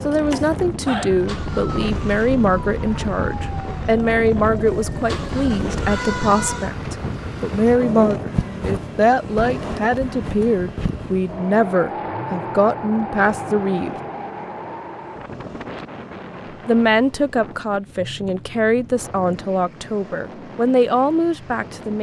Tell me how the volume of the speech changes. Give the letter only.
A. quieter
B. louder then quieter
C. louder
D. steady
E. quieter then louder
D.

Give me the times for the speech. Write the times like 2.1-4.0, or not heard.
0.1-13.9, 16.6-21.9.